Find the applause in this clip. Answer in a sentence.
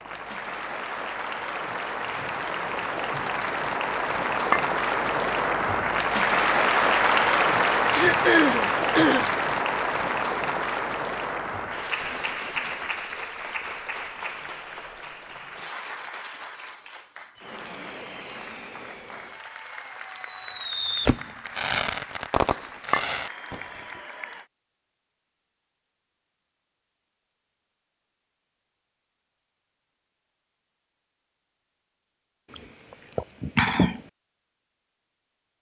The applause can be heard from 0.0 to 24.5 s.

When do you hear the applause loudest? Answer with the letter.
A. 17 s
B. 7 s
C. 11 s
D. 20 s
B.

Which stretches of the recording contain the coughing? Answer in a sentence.
You can hear the coughing from 7.9 to 9.3 s and from 32.5 to 34.0 s.